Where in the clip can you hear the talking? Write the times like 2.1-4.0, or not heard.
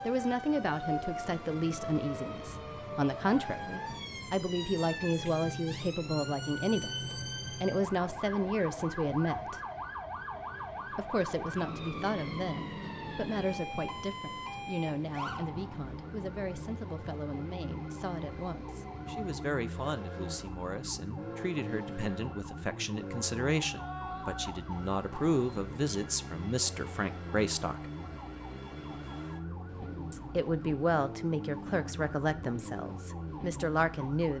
0.0-9.6, 10.9-27.9, 30.1-34.3.